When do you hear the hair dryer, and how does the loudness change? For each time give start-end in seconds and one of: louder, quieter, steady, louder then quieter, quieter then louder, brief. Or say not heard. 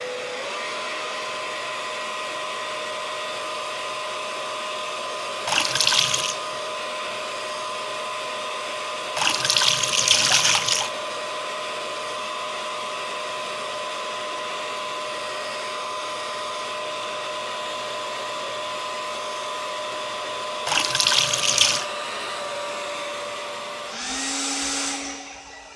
0.0-25.7 steady.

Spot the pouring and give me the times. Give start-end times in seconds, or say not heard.
5.5-6.3, 9.2-10.9, 20.6-21.9.